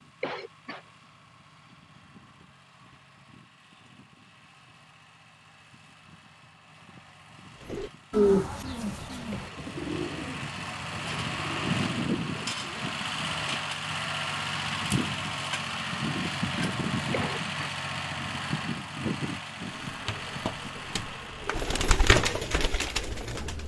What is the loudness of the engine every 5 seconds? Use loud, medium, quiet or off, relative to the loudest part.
quiet, quiet, loud, loud, medium.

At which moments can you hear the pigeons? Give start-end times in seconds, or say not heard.
7.7-13.6, 19.8-23.6.